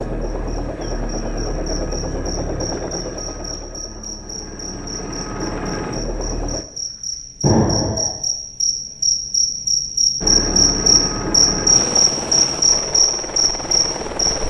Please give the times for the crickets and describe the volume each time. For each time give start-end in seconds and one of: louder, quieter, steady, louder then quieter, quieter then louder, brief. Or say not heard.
0.2-14.3 louder.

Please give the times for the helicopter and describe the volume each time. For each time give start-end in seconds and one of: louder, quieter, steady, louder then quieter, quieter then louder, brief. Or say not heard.
0.0-6.7 quieter then louder
10.2-14.4 quieter.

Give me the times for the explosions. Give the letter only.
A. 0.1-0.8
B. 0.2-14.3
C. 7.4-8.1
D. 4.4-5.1
C.